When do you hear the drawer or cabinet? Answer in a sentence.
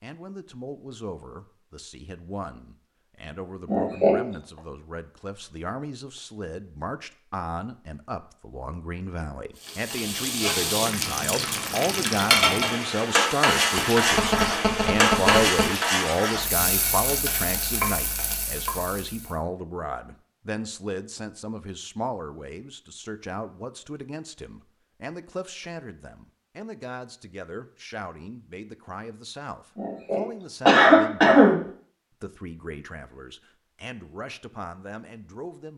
The drawer or cabinet can't be heard in this clip.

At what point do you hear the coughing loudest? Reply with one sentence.
The volume of the coughing peaks at 31 seconds.